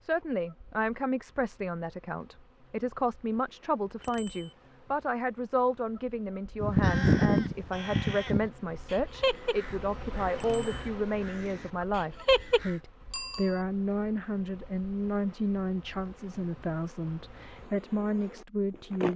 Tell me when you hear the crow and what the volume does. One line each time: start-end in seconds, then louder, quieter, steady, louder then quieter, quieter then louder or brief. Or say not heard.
6.6-12.8 quieter then louder.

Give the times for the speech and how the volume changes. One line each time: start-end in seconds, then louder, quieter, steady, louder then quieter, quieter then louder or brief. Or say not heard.
0.0-19.1 steady.